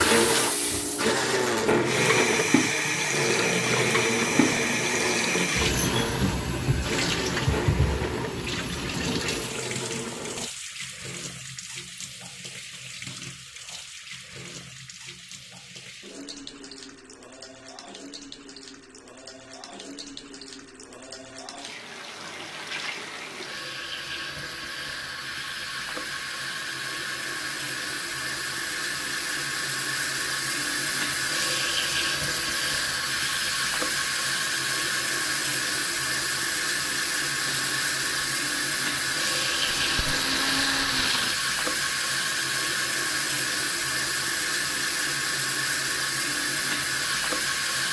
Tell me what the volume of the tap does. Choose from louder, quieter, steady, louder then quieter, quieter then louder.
quieter then louder.